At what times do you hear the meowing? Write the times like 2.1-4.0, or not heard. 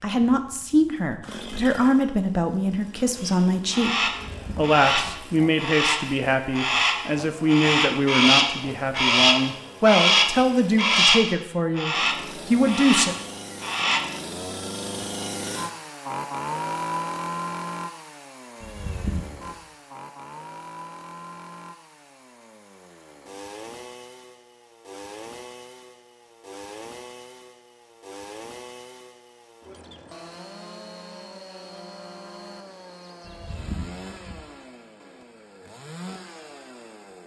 4.1-5.2, 18.6-19.6, 33.2-34.5.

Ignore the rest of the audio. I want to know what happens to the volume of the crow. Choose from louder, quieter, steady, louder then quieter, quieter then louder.
louder then quieter.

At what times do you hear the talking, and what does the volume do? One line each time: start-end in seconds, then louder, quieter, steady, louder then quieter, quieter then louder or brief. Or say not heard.
0.0-13.2 steady.